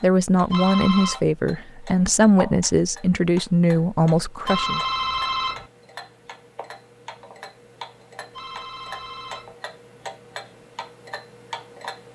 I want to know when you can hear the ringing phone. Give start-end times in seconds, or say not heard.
0.5-1.2, 4.5-5.7, 8.3-9.6.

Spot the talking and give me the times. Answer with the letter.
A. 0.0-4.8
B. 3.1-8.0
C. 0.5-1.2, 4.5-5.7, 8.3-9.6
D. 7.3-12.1
A.